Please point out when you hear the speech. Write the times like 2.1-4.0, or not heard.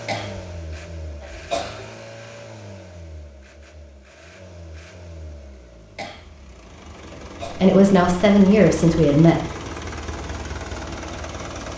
7.5-9.4.